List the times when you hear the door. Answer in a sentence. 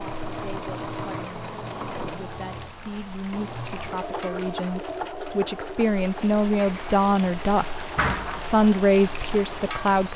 The door can be heard from 8.0 to 8.6 s.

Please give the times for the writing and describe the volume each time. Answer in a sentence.
You can't hear the writing here.